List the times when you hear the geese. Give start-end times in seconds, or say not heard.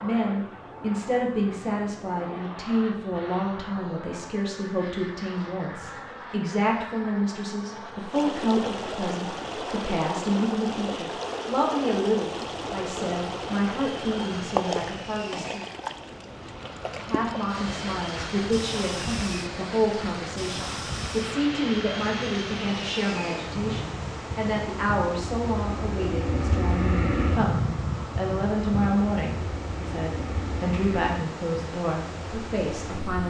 not heard.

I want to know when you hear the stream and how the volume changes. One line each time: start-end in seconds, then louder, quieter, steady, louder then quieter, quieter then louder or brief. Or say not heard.
8.1-33.2 quieter.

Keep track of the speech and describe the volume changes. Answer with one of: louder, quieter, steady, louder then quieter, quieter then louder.
steady.